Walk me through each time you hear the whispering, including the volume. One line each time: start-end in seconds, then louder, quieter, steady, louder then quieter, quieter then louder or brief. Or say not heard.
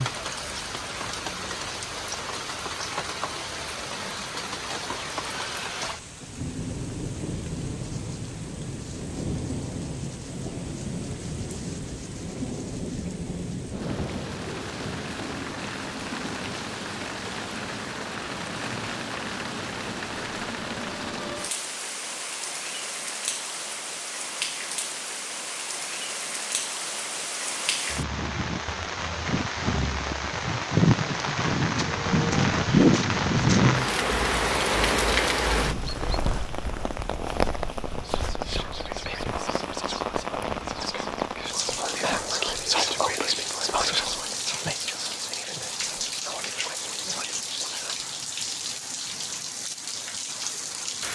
38.0-48.1 louder then quieter.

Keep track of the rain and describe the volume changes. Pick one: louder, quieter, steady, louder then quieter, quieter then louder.
louder then quieter.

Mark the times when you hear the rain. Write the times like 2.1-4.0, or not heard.
0.0-51.0.